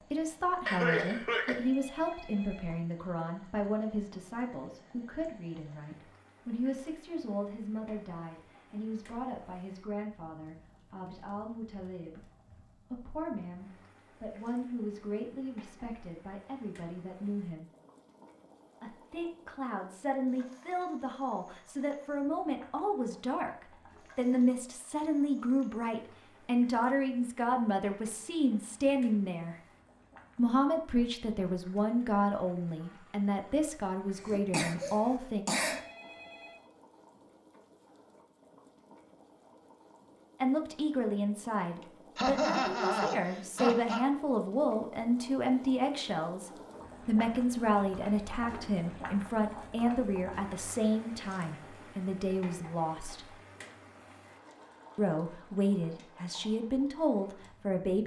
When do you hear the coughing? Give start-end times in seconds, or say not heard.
0.7-1.6, 34.2-35.8, 42.1-44.0.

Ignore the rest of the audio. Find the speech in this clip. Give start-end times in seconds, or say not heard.
0.0-17.7, 18.8-29.6, 30.4-35.5, 40.4-53.3, 55.0-58.0.